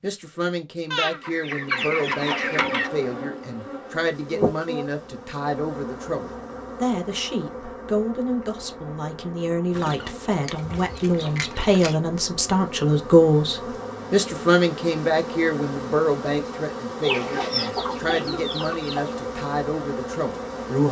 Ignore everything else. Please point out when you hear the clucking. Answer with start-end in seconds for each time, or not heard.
0.9-2.9, 9.7-11.9, 17.0-19.2.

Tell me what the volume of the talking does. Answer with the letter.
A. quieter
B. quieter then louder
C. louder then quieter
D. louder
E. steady
C.